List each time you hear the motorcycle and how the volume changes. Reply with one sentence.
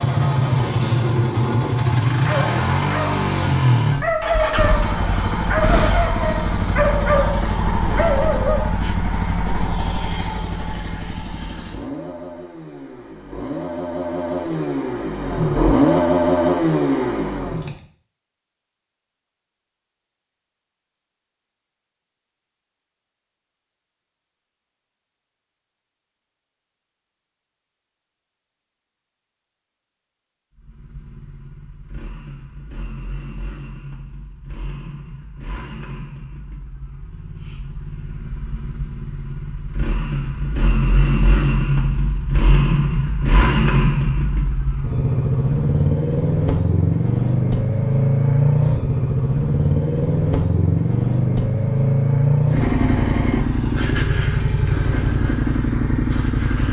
You can hear the motorcycle from 0.0 to 17.8 s, getting quieter then louder; and from 30.6 to 56.6 s, getting louder.